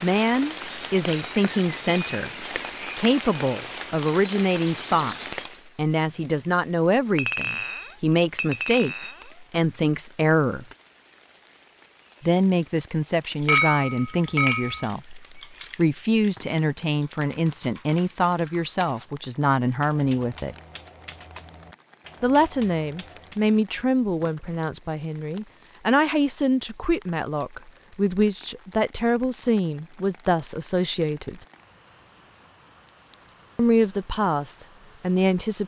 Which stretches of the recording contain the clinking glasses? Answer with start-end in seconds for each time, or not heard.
7.2-9.2, 13.4-14.9, 32.9-33.4.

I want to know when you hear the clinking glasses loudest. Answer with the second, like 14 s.
14 s.